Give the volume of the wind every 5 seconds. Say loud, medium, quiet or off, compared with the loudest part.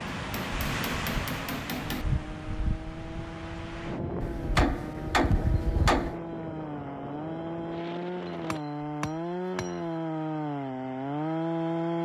loud, medium, off.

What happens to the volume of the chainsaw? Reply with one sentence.
The volume of the chainsaw goes up.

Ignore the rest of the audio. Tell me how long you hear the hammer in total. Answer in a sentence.
You can hear the hammer for 5 seconds altogether.